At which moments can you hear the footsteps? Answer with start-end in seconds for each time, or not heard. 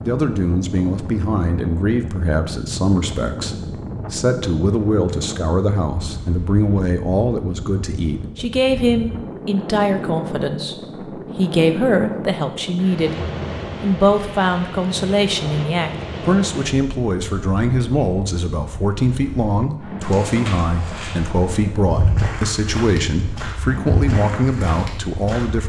20.0-25.6.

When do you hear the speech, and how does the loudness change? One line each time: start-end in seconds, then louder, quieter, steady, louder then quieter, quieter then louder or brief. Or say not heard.
0.0-13.2 steady
13.8-25.6 steady.